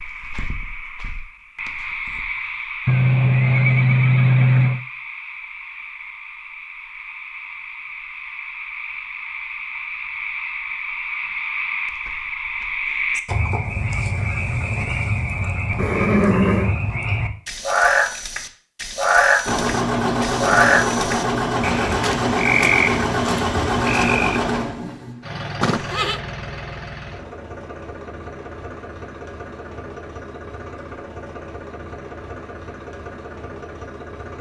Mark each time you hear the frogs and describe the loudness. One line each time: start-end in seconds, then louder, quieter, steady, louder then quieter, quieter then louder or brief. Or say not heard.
0.0-24.4 louder.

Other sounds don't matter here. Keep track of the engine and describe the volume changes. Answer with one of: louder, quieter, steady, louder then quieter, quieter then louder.
quieter.